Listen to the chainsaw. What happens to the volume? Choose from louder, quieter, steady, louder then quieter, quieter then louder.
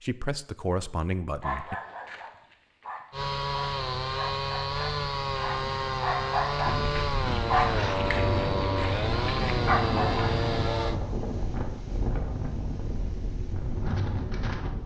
steady.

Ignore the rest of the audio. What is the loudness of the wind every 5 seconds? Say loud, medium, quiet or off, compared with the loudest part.
off, loud, loud.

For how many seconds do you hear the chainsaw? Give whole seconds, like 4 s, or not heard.
8 s.